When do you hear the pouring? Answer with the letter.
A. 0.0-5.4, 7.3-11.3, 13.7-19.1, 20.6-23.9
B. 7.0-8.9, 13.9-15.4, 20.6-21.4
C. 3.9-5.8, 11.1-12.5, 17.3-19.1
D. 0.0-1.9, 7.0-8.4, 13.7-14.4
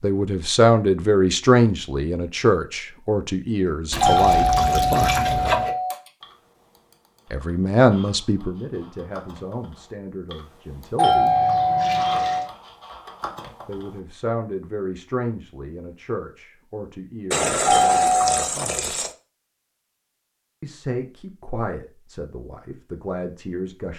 C.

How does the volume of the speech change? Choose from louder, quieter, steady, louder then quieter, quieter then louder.
quieter.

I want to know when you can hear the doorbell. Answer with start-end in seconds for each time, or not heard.
4.0-6.0, 10.9-12.4, 17.6-18.4.